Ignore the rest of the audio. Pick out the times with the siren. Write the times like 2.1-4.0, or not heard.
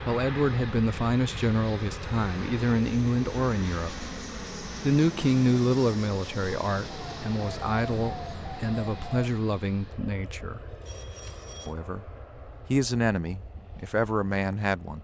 6.8-9.3.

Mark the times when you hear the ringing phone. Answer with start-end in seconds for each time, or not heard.
10.7-11.8.